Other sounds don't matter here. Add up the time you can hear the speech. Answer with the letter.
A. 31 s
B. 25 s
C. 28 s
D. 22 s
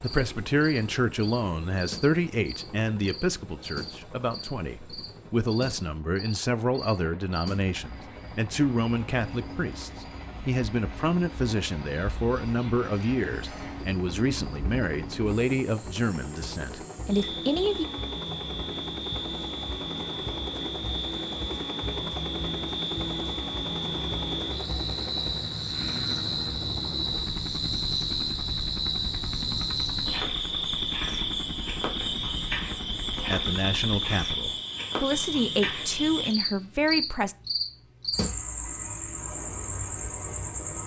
D.